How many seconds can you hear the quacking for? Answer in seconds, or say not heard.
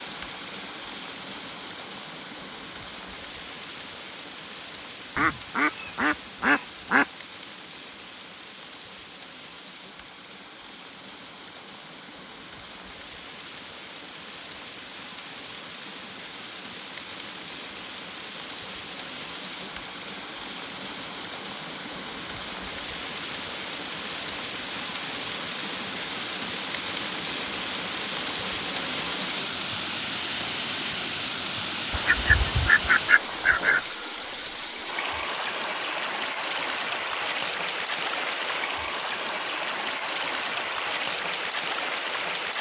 4 s.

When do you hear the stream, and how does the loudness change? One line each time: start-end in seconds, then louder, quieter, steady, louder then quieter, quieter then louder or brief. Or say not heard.
0.0-42.5 louder.